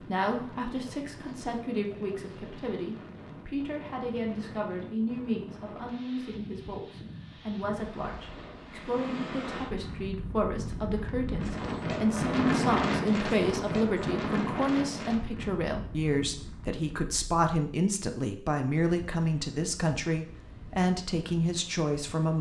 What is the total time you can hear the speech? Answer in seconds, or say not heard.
22 s.